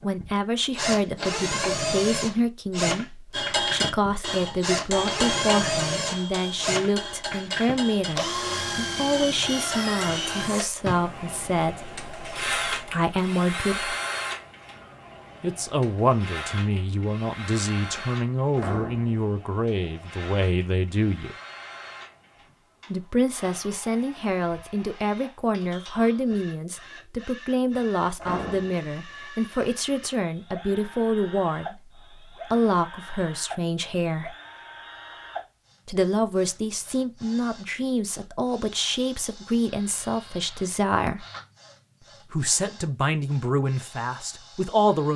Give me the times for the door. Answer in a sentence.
You can hear the door from 18.6 to 19.2 s and from 28.1 to 28.9 s.